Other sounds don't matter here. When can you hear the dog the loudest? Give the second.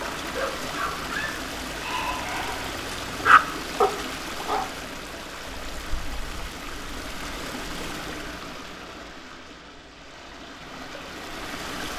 3 s.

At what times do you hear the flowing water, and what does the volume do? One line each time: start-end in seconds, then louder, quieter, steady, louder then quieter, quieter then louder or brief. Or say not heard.
0.0-11.9 quieter.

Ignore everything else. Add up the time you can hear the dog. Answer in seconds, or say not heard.
5 s.